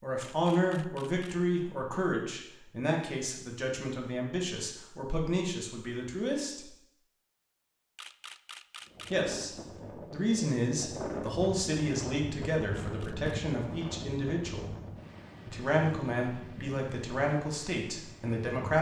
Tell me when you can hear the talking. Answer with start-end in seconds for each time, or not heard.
0.0-6.7, 9.1-14.7, 15.5-18.7.